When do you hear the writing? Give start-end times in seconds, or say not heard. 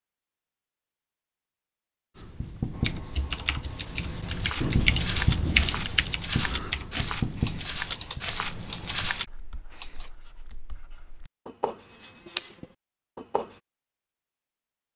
2.1-13.6.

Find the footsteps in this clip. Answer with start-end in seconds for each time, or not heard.
4.3-9.8.